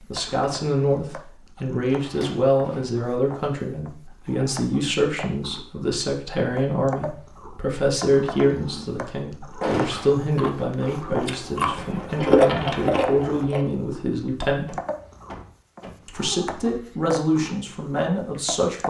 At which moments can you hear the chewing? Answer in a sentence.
You can hear the chewing from 9.8 to 13.6 s.